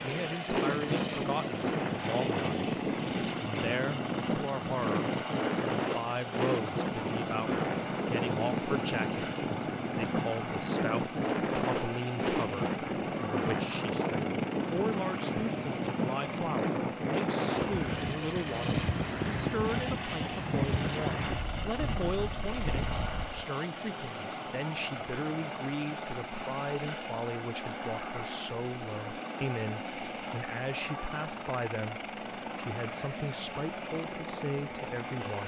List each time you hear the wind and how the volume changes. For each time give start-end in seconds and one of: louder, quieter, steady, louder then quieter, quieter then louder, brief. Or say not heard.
0.0-23.4 steady.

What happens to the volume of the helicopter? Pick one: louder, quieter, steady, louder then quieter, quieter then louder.
steady.